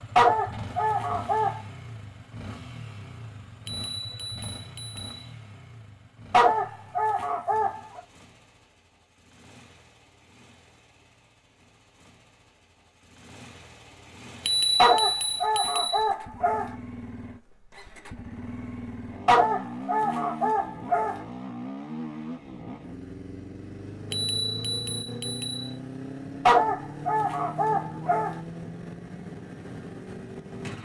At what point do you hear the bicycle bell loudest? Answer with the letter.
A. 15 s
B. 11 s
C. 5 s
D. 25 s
A.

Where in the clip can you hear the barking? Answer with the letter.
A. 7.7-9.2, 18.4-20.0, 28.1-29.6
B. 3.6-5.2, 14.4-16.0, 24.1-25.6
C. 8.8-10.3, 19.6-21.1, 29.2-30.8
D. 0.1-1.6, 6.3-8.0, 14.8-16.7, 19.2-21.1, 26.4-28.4
D.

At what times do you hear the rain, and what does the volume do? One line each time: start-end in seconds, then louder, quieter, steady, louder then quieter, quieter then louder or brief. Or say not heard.
not heard.